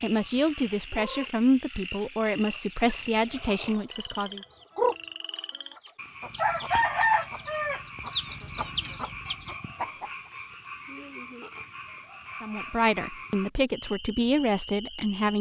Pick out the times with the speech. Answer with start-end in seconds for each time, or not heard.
0.0-4.4, 12.4-15.3.